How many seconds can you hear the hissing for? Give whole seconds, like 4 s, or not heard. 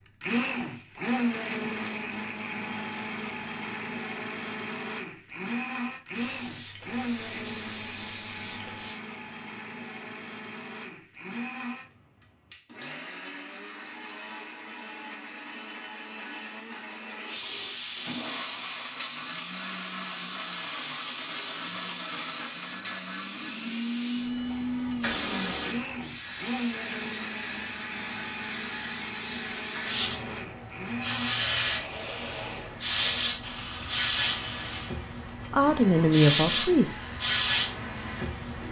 24 s.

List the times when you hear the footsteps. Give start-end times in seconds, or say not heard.
not heard.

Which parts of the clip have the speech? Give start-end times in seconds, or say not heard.
35.5-37.1.